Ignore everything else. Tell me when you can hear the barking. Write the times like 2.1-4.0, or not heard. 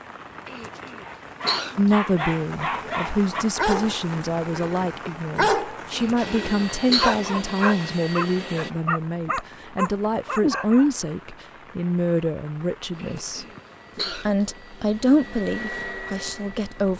1.1-10.9.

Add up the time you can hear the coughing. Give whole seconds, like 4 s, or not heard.
4 s.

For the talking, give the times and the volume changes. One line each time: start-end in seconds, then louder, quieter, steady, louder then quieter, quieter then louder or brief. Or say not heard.
1.8-13.4 steady
14.1-16.9 brief.